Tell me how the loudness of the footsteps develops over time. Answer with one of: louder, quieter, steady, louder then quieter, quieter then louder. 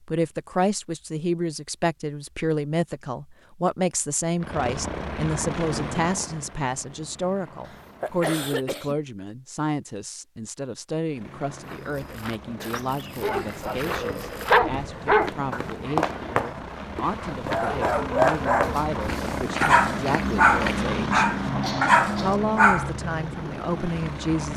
louder then quieter.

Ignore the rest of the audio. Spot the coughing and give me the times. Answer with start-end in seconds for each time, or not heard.
7.7-8.9, 21.6-22.4.